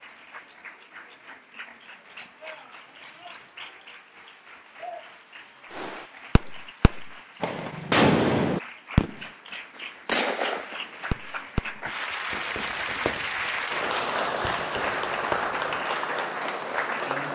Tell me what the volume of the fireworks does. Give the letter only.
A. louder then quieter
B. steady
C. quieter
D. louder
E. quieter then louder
A.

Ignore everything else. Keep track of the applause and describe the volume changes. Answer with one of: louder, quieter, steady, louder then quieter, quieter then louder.
louder.